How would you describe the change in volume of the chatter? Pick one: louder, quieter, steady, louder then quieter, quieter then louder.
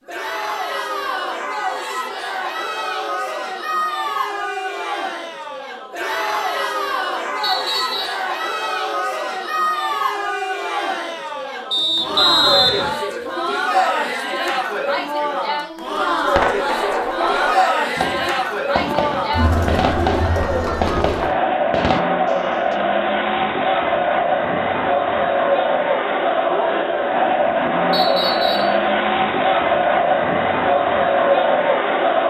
louder.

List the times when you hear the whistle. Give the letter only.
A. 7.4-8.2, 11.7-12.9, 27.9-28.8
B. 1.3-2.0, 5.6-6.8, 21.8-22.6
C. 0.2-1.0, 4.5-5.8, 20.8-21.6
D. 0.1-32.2
A.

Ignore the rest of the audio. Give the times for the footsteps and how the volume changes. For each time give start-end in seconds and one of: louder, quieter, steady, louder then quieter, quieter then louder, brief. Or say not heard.
not heard.